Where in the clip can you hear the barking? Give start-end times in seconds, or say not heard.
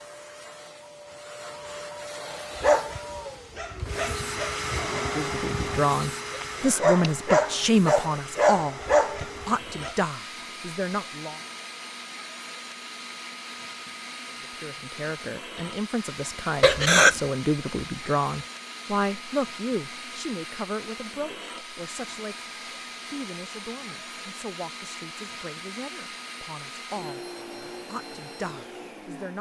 2.2-9.9.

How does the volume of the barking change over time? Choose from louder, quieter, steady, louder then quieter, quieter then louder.
quieter then louder.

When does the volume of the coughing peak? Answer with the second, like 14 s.
17 s.